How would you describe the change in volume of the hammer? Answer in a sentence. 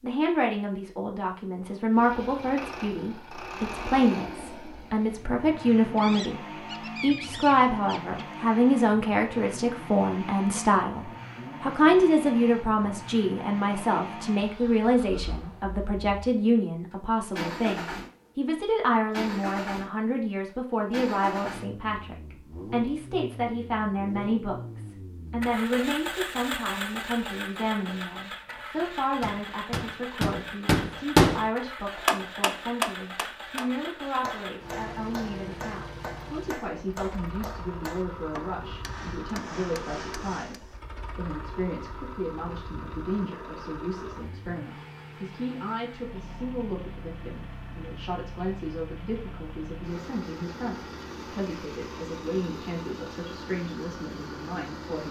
The volume of the hammer goes down.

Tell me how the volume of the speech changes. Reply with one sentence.
The loudness of the speech goes down.